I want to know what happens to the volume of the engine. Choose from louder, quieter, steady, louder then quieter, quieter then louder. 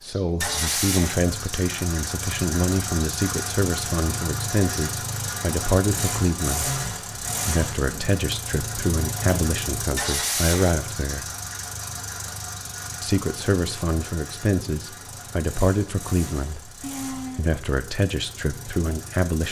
quieter.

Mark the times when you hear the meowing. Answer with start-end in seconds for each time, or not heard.
16.8-17.5.